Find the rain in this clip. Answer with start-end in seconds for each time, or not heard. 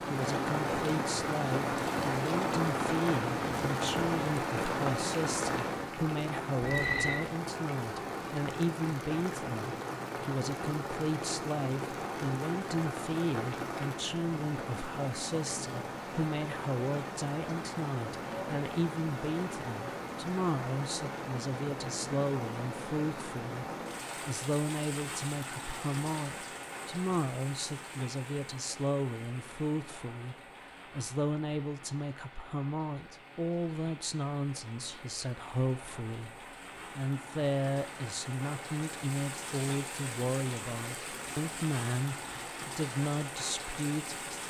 0.0-44.4.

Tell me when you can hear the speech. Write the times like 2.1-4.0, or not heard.
0.1-44.4.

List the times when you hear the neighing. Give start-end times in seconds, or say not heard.
6.6-7.2.